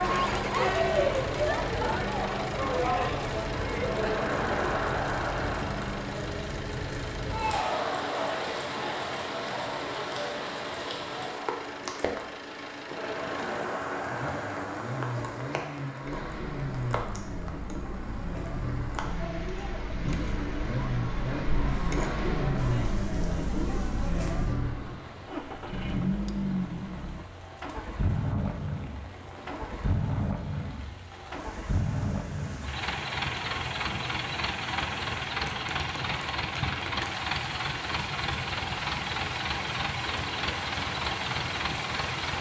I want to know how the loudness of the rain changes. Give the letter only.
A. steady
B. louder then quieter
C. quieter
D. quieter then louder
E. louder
D.